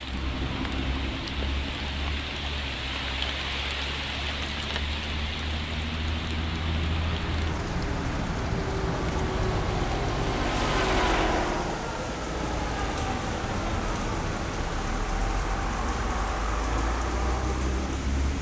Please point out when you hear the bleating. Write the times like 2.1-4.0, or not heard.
not heard.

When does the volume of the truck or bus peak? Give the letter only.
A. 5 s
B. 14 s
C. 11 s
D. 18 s
C.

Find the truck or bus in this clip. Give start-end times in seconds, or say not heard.
0.0-18.3.